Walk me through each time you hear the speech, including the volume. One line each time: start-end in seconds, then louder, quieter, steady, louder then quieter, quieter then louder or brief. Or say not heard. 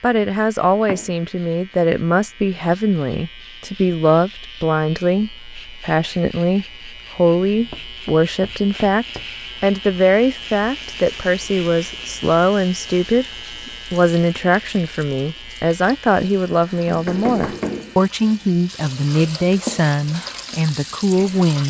0.0-21.6 steady.